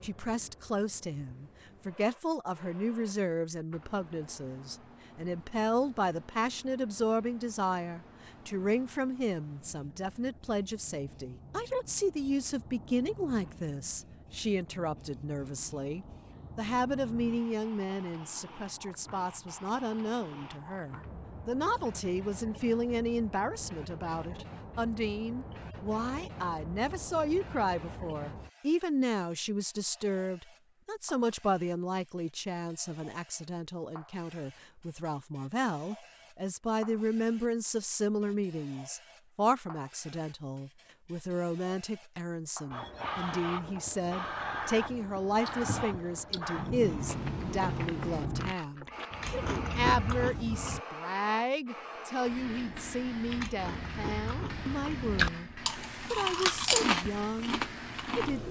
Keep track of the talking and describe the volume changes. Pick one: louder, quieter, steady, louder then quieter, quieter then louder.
steady.